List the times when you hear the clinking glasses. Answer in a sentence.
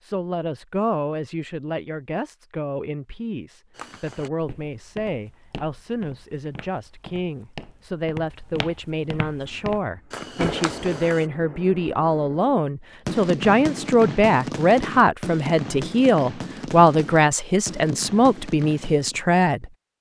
The clinking glasses can't be heard in this clip.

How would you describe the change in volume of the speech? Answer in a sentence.
The loudness of the speech goes up.